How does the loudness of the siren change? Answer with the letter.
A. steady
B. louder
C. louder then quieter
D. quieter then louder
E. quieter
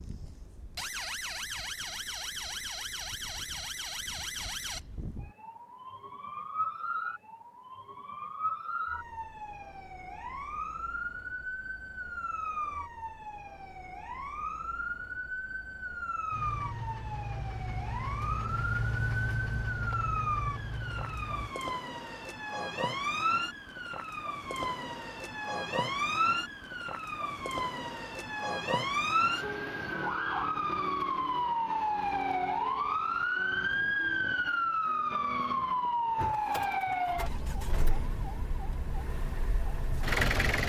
B.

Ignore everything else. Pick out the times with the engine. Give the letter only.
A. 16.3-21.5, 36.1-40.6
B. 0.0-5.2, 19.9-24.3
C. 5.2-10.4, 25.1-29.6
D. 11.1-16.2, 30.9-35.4
A.